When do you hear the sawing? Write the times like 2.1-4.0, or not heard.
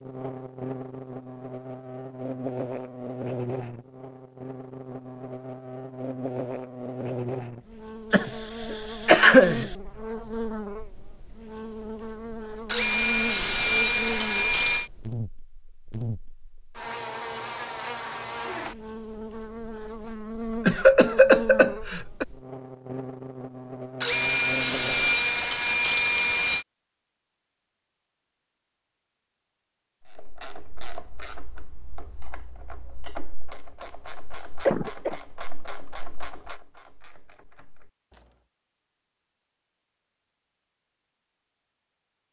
12.7-14.9, 24.0-26.6.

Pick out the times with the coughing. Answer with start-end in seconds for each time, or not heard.
8.1-9.7, 20.6-22.2, 34.6-35.1.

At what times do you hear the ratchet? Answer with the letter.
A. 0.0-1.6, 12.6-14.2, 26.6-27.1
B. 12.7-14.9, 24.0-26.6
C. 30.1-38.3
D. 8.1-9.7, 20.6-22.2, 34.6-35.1
C.